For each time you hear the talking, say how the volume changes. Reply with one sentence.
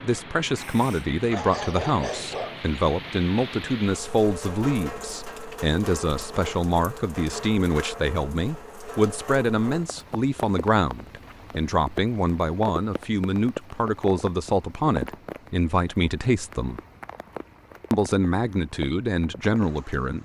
You can hear the talking from 0.0 to 16.8 s, at a steady volume; and briefly from 17.9 to 20.1 s.